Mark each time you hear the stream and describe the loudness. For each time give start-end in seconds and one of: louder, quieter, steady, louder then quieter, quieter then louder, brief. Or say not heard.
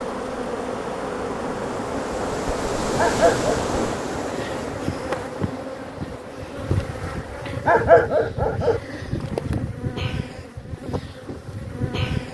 0.0-7.5 louder then quieter.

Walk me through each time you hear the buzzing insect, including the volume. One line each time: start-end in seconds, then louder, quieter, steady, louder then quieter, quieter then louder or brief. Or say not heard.
0.0-12.2 steady.